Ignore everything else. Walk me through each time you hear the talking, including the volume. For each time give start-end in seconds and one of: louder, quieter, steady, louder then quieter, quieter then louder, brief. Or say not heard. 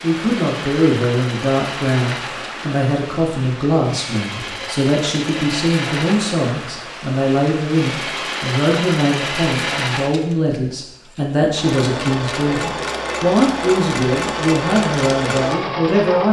0.0-16.2 steady.